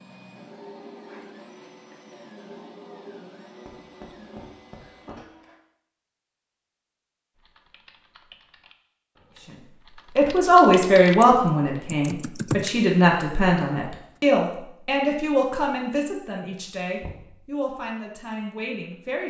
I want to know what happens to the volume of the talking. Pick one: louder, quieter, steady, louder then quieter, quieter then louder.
quieter.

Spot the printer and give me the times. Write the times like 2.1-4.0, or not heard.
0.0-5.6.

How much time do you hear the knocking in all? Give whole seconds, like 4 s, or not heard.
2 s.